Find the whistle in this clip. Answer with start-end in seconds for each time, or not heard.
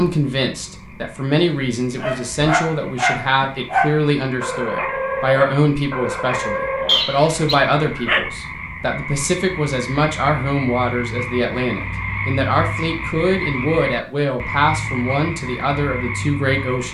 6.8-7.5.